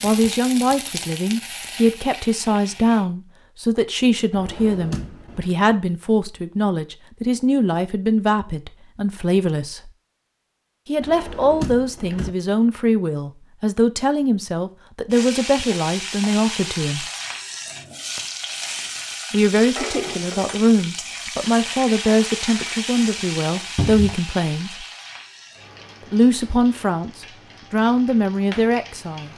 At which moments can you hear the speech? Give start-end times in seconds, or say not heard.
0.0-9.9, 10.8-17.1, 19.3-24.9, 26.1-29.3.